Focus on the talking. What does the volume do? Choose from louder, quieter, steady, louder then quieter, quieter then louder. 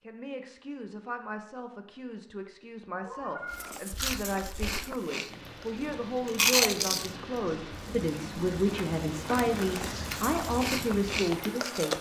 louder.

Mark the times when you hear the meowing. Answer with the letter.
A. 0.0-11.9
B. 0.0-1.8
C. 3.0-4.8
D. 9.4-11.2
C.